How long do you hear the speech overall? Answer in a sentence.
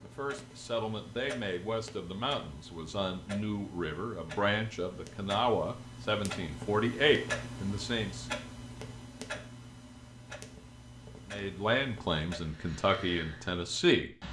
You can hear the speech for 11 seconds altogether.